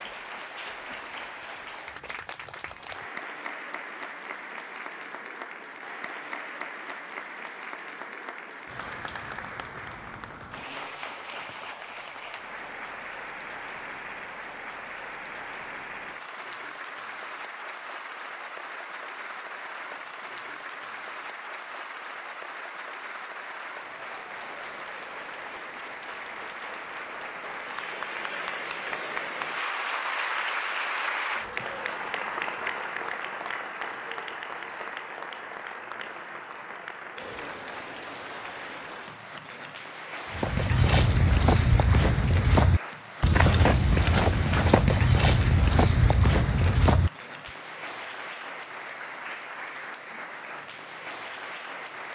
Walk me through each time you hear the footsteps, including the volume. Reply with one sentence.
You can hear the footsteps from 40.3 to 47.1 s, at a steady volume.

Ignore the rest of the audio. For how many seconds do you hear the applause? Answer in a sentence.
The applause can be heard for 52 seconds in total.